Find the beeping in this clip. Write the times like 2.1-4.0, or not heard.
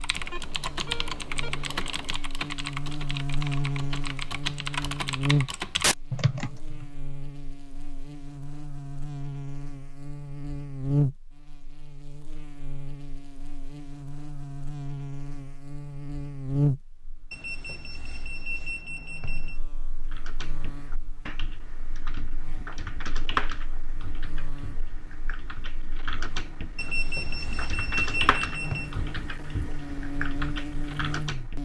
0.1-2.1, 17.3-19.6, 26.8-28.9.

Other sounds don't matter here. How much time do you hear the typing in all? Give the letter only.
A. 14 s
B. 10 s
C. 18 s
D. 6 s
C.